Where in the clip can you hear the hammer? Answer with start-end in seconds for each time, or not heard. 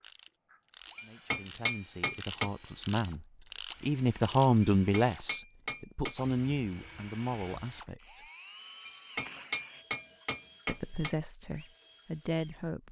0.9-2.5, 4.6-6.2, 8.8-11.2.